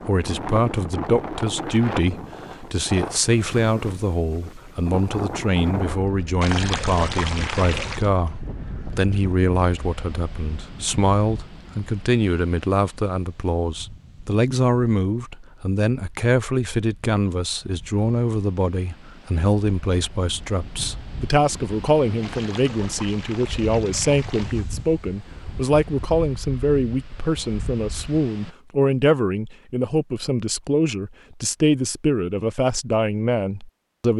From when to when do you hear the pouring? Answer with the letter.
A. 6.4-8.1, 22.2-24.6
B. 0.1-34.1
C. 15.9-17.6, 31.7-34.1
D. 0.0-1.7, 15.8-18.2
A.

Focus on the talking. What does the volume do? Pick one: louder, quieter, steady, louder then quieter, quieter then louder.
steady.